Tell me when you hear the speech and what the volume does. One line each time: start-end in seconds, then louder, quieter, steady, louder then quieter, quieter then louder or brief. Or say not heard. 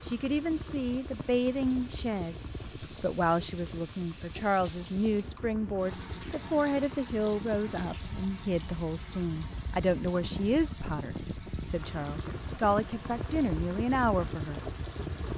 0.0-14.6 steady.